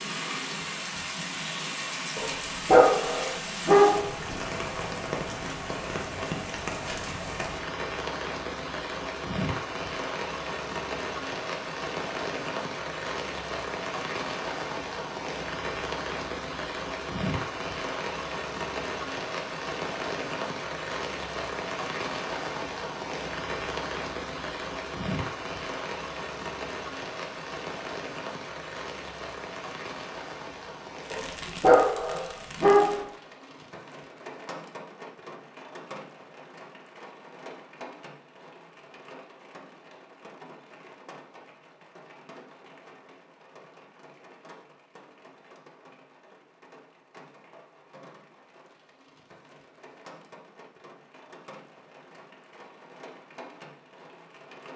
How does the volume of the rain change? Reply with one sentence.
The volume of the rain goes down.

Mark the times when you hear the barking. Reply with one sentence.
You can hear the barking from 2.1 to 4.0 s and from 31.1 to 33.0 s.